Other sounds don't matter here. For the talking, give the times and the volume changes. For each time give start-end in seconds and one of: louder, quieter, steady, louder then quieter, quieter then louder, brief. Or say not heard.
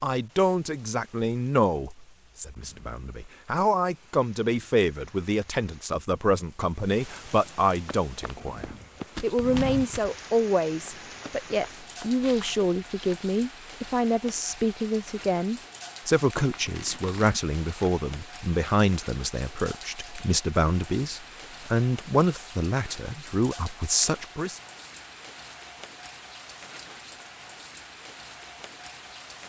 0.0-24.6 steady.